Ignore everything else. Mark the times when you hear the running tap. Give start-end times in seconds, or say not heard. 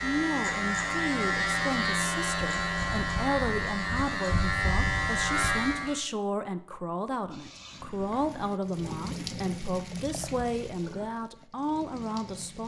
7.3-12.6.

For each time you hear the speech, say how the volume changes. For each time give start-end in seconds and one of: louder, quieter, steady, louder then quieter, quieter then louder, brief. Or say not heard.
0.0-12.6 steady.